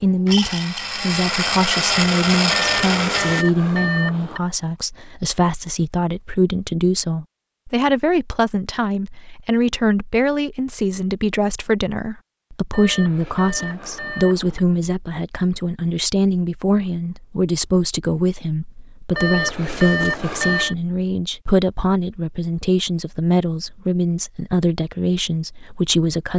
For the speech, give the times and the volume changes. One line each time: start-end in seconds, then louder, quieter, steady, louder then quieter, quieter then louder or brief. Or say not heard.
0.0-26.3 steady.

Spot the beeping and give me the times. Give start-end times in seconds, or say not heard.
2.5-4.4, 12.7-14.6, 19.1-20.8.